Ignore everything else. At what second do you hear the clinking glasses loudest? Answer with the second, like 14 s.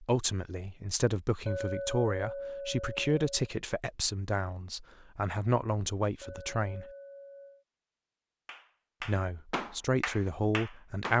2 s.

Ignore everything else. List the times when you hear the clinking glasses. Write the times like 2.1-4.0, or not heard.
1.4-3.5, 6.2-7.7.